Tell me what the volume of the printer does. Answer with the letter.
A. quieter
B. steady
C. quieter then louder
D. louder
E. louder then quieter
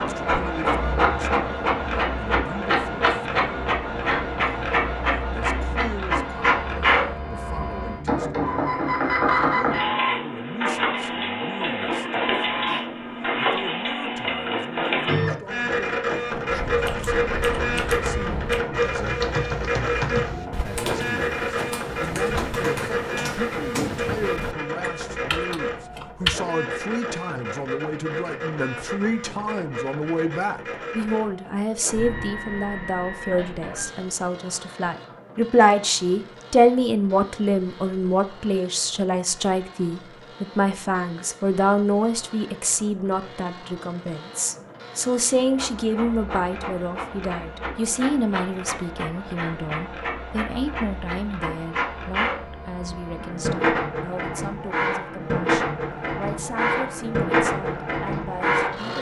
C.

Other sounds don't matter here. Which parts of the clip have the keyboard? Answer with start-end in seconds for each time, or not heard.
16.4-26.4.